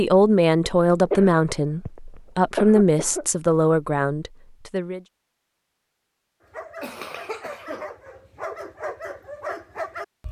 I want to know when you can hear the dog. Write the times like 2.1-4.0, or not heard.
6.5-10.2.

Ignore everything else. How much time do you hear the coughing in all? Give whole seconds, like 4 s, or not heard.
3 s.